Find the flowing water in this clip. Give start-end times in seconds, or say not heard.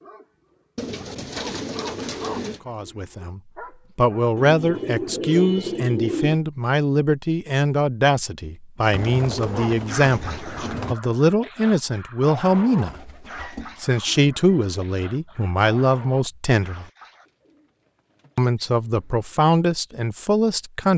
not heard.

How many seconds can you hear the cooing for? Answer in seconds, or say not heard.
10 s.